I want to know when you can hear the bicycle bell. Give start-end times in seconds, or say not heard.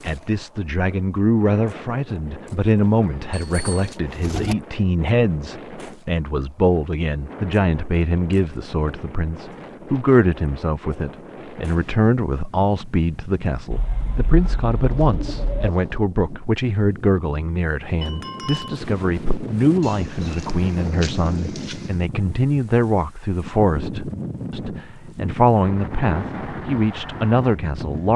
3.3-4.0, 18.0-18.8.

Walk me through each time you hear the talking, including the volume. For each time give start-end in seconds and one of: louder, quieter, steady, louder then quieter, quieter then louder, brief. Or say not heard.
0.0-28.1 steady.